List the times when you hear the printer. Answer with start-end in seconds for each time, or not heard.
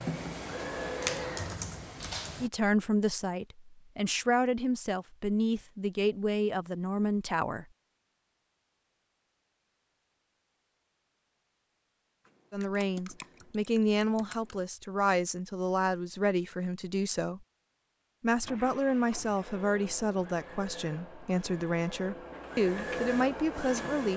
0.0-1.6, 18.4-24.1.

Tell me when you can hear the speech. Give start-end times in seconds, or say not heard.
2.4-7.7, 12.5-17.4, 18.2-24.1.